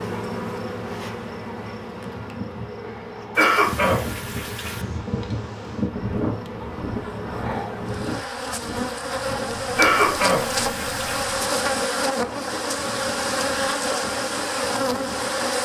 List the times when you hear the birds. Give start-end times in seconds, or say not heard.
not heard.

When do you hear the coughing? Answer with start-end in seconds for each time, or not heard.
3.4-4.8, 9.8-11.2.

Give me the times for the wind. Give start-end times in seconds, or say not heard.
3.6-15.5.